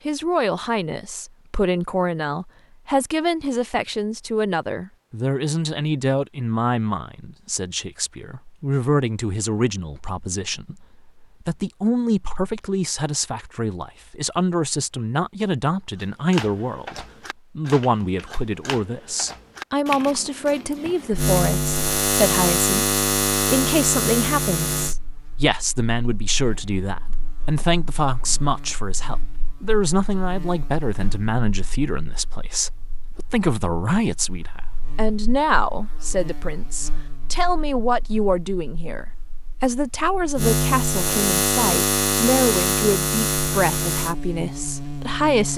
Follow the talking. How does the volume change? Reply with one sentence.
The volume of the talking stays about the same.